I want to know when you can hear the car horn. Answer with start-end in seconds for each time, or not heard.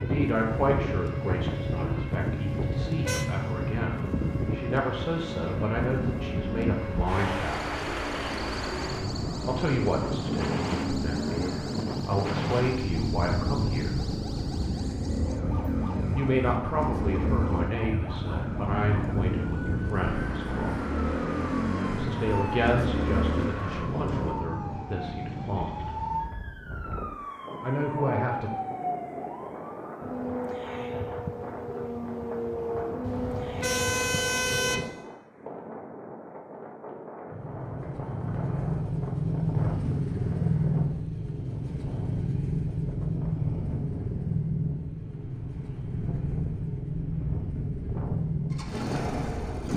2.5-3.2, 33.0-34.9.